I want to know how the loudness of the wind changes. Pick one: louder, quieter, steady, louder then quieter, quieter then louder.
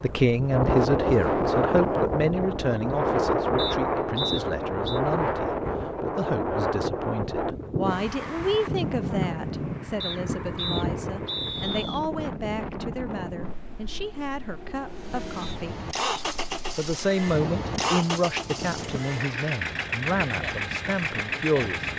quieter.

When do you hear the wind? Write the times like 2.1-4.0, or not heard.
0.0-21.9.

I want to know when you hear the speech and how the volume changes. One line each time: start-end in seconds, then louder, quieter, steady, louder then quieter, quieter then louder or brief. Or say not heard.
0.0-15.8 quieter
16.8-21.9 quieter.